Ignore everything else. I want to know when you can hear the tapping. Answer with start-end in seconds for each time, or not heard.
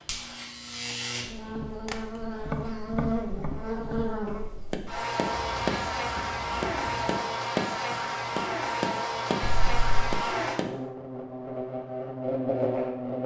1.4-10.8.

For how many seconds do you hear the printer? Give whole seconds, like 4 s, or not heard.
not heard.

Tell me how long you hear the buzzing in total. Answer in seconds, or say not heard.
13 s.